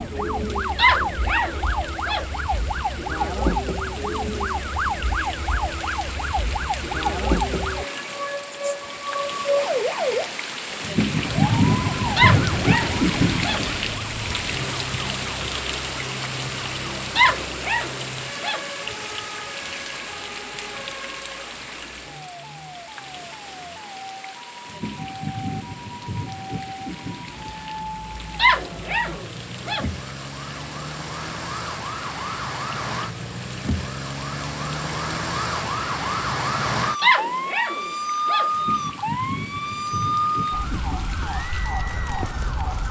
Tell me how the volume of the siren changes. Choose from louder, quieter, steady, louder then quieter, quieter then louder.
quieter then louder.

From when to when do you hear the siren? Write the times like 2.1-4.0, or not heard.
0.0-42.8.